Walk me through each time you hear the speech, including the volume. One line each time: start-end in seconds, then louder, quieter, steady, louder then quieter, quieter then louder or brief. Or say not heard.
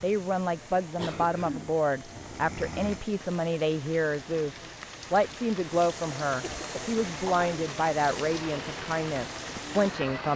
0.0-10.3 steady.